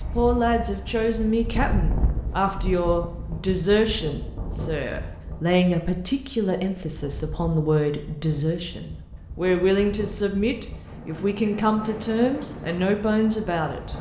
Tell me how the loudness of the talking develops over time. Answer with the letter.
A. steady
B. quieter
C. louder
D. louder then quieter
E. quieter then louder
A.